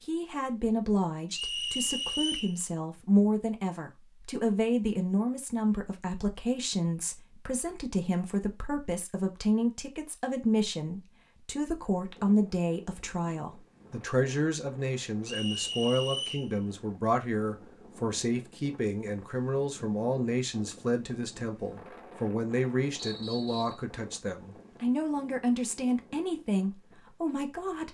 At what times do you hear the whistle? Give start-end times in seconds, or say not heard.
1.3-2.5, 15.2-16.5, 22.9-23.9.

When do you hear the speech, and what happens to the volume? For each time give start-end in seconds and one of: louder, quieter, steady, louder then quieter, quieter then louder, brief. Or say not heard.
0.0-27.8 steady.